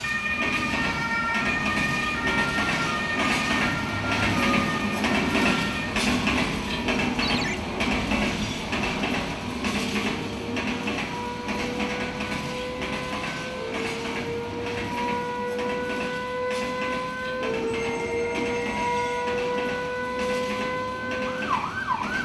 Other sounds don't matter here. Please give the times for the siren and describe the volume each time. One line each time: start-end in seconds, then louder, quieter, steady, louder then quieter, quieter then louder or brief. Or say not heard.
0.0-22.1 quieter then louder.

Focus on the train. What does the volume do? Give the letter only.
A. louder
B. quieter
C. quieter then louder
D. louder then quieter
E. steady
B.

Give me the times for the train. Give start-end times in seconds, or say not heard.
0.0-22.1.